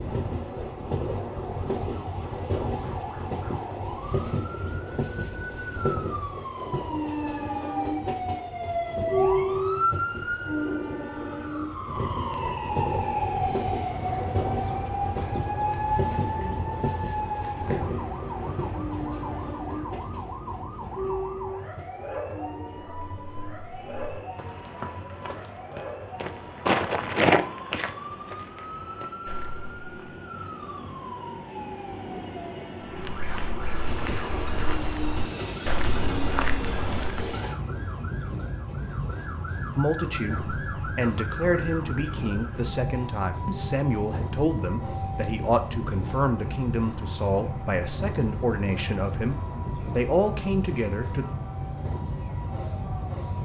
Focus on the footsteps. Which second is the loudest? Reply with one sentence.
The volume of the footsteps peaks at 27 seconds.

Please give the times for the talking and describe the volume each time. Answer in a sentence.
The talking can be heard from 39.8 to 51.2 s, at a steady volume.